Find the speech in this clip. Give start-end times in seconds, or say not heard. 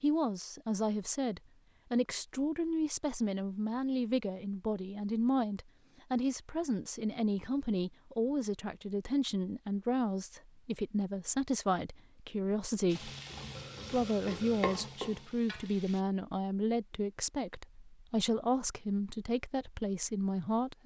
0.0-13.1, 13.9-20.8.